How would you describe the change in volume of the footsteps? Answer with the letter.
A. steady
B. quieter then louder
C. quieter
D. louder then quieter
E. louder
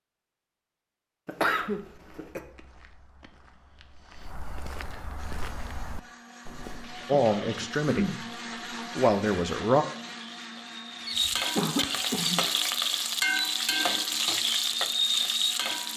E.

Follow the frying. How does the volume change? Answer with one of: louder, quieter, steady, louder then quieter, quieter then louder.
louder.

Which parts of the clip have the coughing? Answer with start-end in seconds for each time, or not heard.
1.2-2.4, 7.0-8.2, 11.0-12.4.